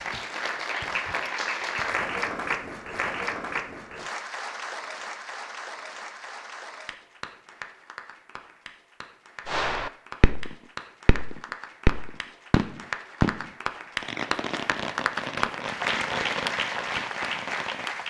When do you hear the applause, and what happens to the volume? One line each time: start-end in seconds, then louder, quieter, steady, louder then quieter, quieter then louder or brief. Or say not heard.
0.0-18.0 quieter then louder.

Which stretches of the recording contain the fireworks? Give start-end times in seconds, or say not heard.
9.4-17.9.